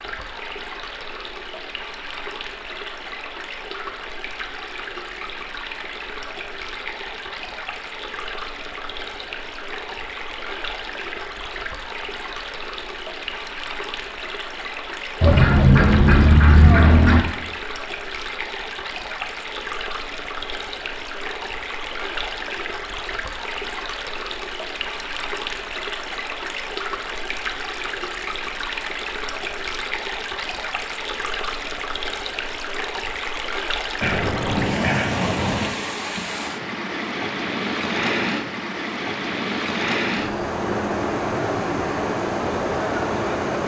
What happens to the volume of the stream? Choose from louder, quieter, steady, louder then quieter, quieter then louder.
louder.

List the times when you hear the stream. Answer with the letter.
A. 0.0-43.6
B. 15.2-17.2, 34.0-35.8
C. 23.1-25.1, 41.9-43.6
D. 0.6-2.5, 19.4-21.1
A.